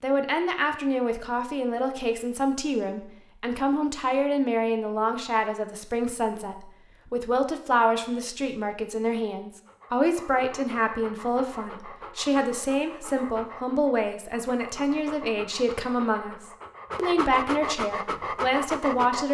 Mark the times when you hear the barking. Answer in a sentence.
The barking can be heard from 9.7 to 19.2 s.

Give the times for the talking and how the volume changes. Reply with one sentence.
The talking can be heard from 0.0 to 19.2 s, at a steady volume.